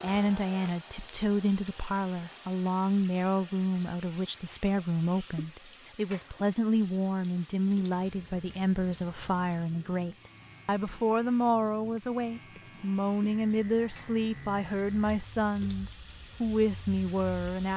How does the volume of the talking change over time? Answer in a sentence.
The loudness of the talking stays about the same.